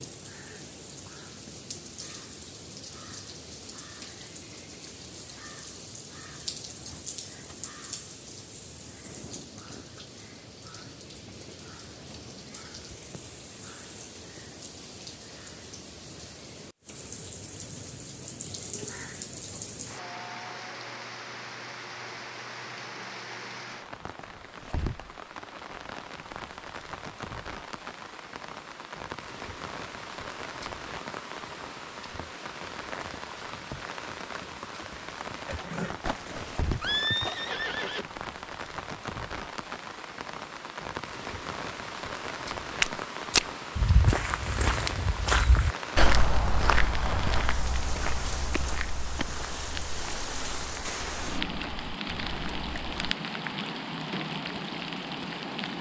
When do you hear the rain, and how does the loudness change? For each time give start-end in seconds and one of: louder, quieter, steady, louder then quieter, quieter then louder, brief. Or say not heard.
0.0-55.7 louder.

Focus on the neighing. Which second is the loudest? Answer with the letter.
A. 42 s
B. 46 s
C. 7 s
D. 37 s
D.